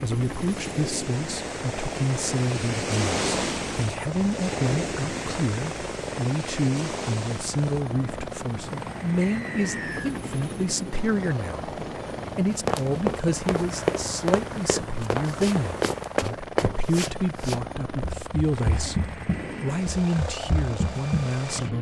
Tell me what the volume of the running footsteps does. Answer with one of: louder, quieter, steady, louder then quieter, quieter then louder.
quieter.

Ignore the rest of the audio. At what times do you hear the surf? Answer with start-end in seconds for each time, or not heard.
0.1-16.0.